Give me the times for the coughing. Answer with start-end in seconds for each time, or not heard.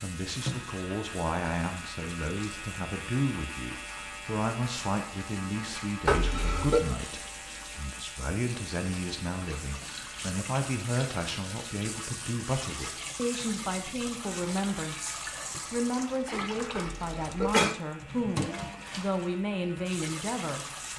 6.0-6.8, 16.8-17.8.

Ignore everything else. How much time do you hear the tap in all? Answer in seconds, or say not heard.
21 s.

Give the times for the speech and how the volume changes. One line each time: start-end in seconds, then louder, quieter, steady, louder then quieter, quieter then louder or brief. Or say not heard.
0.0-20.6 steady.